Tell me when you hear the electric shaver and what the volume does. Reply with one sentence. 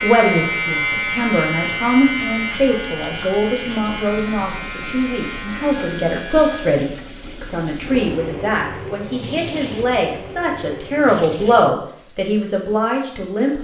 You can hear the electric shaver from 0.0 to 6.8 s, getting quieter.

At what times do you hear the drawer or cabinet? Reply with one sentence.
The drawer or cabinet can't be heard in this clip.